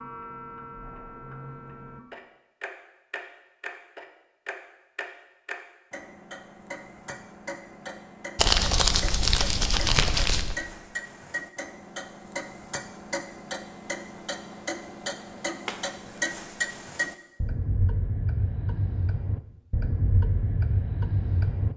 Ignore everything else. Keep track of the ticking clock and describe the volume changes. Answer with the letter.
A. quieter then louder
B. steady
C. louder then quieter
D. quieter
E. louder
E.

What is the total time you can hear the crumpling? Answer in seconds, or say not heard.
2 s.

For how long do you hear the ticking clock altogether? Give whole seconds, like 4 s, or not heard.
22 s.